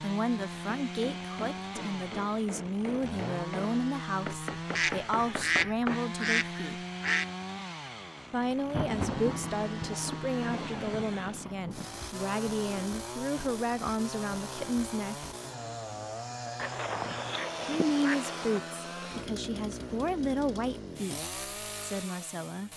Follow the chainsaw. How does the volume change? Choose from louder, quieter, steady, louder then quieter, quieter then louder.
steady.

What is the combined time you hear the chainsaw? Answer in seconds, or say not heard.
23 s.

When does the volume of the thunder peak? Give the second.
9 s.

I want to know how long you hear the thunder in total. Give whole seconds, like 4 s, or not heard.
3 s.